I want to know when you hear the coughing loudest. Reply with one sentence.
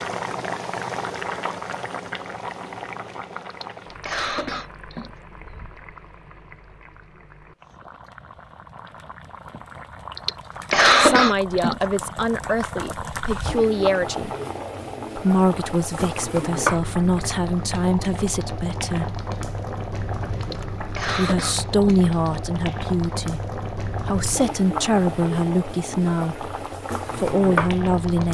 The volume of the coughing peaks at 11 seconds.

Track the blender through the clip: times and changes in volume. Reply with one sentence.
The blender can't be heard in this clip.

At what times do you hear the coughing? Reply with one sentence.
The coughing can be heard from 3.5 to 5.1 s, from 10.2 to 11.8 s and from 20.4 to 22.1 s.